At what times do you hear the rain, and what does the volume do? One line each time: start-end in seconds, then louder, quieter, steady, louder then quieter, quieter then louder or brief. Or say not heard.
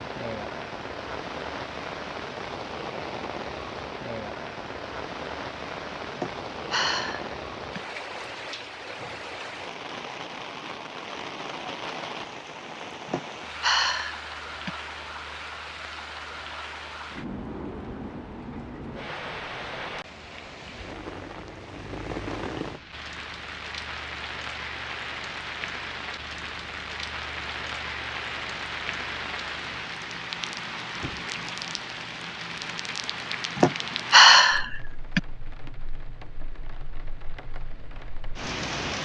0.0-39.0 steady.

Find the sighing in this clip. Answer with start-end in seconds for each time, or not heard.
6.2-7.8, 13.1-14.7, 33.5-35.2.